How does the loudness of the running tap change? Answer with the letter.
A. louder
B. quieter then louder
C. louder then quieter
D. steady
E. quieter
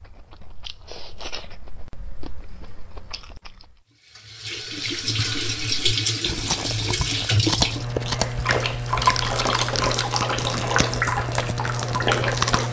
D.